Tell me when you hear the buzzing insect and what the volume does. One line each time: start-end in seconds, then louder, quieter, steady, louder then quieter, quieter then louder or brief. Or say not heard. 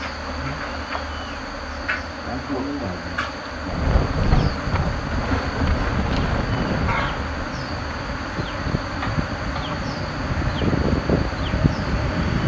0.0-12.4 steady.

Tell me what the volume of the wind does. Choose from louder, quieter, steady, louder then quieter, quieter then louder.
quieter then louder.